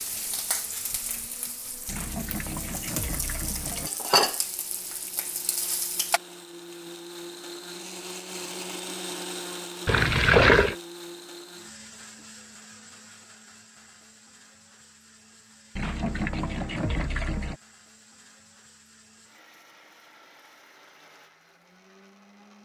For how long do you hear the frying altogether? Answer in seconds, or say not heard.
6 s.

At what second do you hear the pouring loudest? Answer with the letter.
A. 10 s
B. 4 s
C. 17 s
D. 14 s
A.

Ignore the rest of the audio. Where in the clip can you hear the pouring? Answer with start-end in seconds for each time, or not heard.
1.9-3.9, 9.8-10.8, 15.8-17.6.